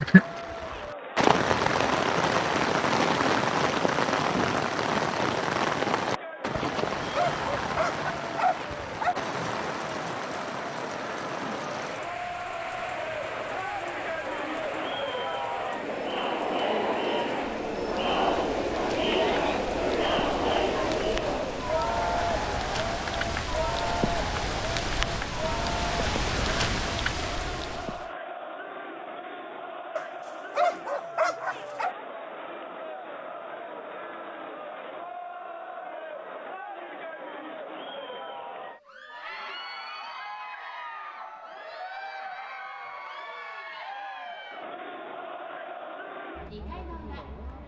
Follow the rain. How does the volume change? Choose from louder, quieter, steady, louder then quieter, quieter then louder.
quieter then louder.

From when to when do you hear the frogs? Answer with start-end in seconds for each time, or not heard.
not heard.